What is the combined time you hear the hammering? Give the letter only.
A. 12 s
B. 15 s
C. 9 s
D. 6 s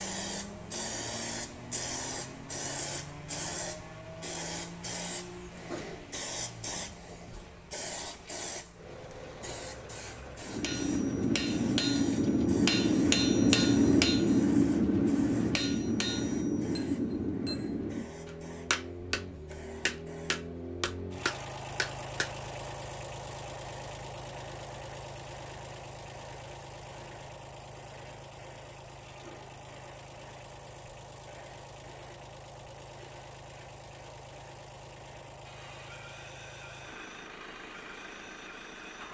A.